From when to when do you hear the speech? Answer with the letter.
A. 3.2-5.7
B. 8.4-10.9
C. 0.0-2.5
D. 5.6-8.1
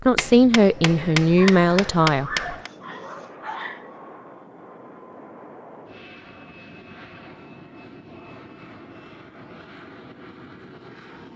C.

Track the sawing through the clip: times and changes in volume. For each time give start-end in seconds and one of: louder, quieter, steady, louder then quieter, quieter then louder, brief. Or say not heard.
not heard.